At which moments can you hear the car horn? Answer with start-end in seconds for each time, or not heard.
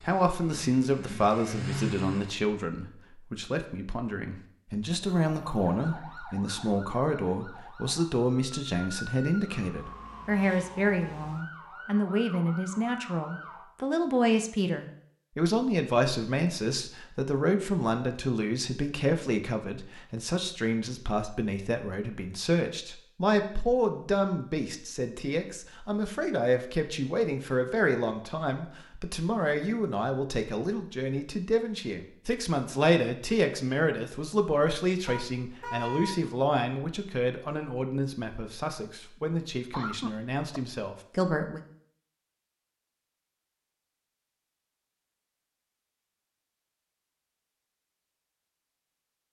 35.0-36.1.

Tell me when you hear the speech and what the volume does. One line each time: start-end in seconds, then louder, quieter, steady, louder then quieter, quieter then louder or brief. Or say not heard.
0.0-41.6 steady.